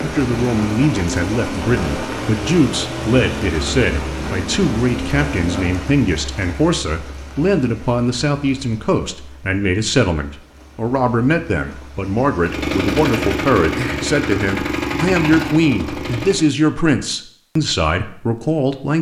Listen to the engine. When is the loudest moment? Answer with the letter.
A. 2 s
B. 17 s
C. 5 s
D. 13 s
D.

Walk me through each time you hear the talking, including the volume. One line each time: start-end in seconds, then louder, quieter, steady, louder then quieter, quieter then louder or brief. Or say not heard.
0.0-18.9 steady.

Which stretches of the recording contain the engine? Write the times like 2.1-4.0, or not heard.
0.0-5.8, 12.4-16.4.